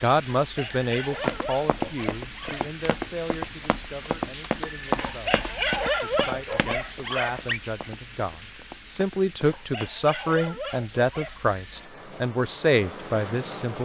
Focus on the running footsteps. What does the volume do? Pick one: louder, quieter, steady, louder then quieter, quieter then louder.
quieter.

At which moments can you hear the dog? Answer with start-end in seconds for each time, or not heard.
0.4-2.7, 5.0-7.6, 9.4-11.4.